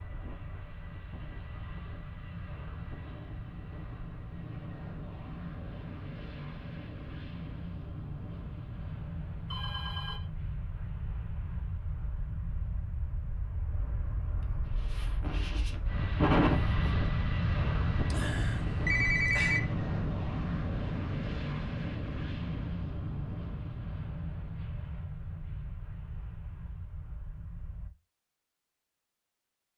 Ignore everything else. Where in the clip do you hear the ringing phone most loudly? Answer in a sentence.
The volume of the ringing phone peaks at 19 seconds.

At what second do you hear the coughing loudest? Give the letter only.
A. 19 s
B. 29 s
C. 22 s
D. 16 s
D.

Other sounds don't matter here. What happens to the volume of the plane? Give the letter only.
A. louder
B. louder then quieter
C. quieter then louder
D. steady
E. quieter
B.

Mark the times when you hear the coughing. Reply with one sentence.
You can hear the coughing from 14.8 to 16.8 s.